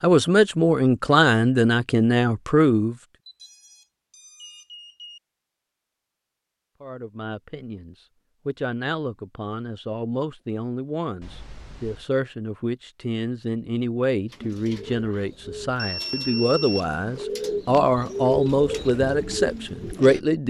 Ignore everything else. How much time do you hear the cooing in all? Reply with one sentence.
The cooing can be heard for 6 seconds in total.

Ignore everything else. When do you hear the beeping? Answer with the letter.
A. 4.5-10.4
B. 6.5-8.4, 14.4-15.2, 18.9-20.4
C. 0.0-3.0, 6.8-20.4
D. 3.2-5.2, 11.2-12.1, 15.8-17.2
D.